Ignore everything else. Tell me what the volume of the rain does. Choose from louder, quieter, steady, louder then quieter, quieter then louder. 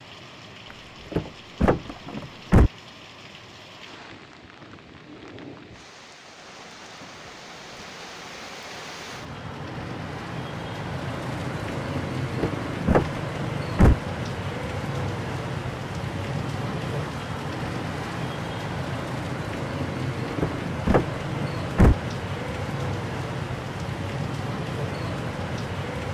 louder.